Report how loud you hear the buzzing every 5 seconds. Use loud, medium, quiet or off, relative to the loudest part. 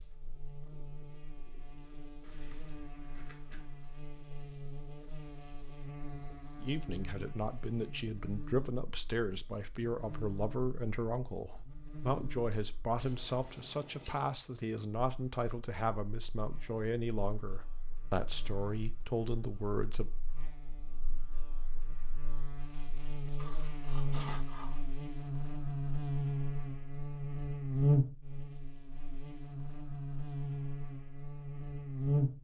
quiet, quiet, quiet, quiet, medium, loud, loud.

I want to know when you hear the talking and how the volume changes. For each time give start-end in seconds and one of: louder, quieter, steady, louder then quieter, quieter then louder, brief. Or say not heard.
6.6-20.1 steady.